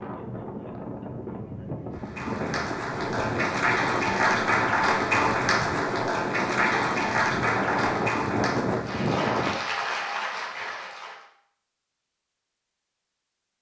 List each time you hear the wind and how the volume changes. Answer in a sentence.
The wind can be heard from 0.0 to 9.6 s, getting louder.